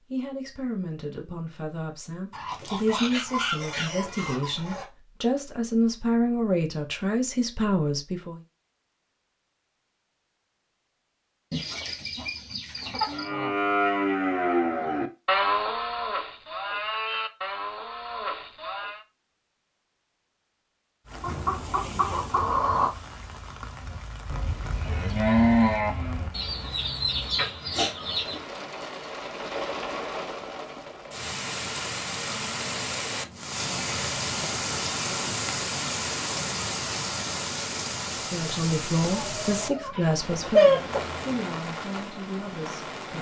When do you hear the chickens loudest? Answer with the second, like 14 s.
41 s.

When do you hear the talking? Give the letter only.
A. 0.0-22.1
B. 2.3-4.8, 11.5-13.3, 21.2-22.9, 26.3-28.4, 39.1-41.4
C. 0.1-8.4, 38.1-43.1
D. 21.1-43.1
C.